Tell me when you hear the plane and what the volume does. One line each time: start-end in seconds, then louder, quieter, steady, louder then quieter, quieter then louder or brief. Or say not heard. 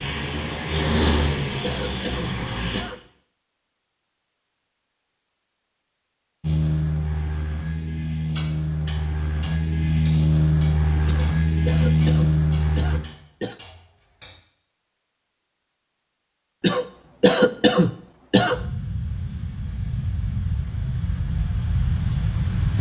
0.0-2.9 brief
6.4-13.0 louder
18.5-22.7 louder.